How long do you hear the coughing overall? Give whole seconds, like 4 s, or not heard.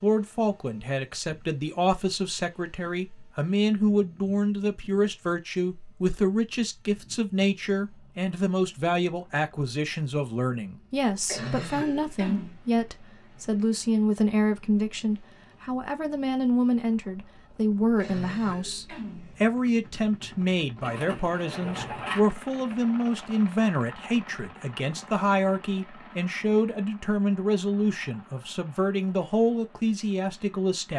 3 s.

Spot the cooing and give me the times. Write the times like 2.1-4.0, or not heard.
20.8-22.2.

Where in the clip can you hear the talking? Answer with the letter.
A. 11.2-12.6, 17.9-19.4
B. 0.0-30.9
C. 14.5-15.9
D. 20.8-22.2
B.